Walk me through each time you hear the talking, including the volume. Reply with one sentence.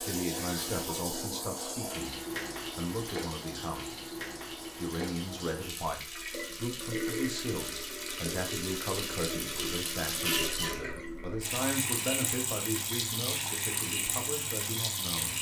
You can hear the talking from 0.0 to 15.3 s, at a steady volume.